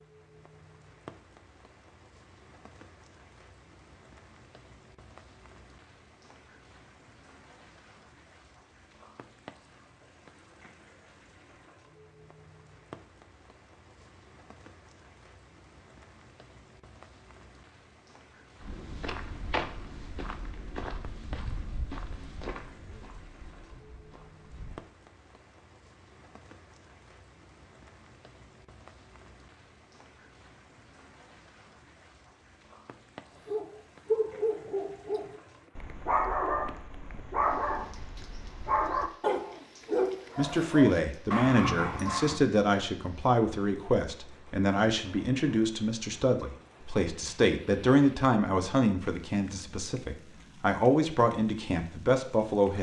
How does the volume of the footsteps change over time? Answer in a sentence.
The volume of the footsteps goes down.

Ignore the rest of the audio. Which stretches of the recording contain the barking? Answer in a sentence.
You can hear the barking from 33.5 to 42.4 s.